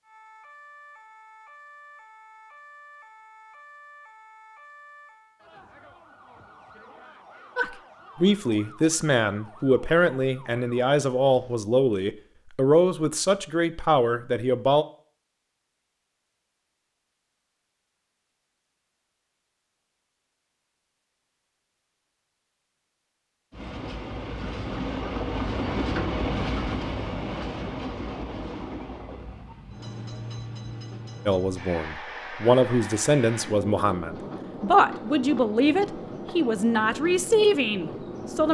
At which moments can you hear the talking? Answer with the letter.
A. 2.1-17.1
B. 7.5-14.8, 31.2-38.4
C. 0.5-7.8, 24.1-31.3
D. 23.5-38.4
B.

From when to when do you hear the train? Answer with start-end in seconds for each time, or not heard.
23.5-38.4.